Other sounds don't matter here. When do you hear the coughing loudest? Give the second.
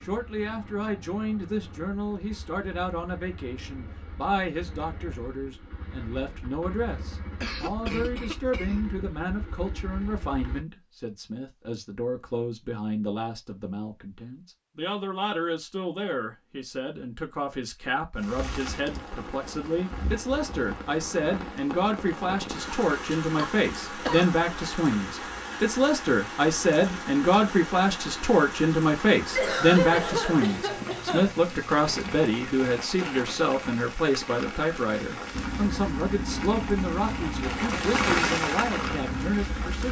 30 s.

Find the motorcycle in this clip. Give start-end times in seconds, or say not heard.
0.0-10.7, 35.3-39.8.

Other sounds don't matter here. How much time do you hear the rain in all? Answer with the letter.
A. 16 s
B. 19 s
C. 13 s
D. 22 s
D.